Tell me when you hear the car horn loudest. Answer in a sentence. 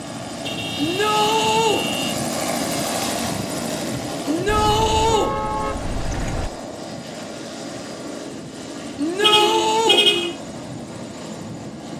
The loudest moment of the car horn is at 10 seconds.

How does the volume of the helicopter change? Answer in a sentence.
The loudness of the helicopter goes down.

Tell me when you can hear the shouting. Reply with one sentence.
You can hear the shouting from 0.8 to 1.9 s, from 4.2 to 5.3 s and from 8.9 to 10.1 s.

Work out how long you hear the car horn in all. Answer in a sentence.
You can hear the car horn for 5 seconds altogether.